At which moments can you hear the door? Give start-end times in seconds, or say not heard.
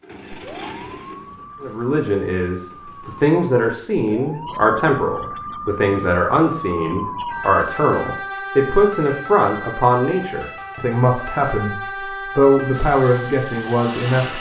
not heard.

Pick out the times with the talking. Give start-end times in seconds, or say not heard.
1.6-14.3.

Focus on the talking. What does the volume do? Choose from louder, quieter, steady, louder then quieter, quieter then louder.
steady.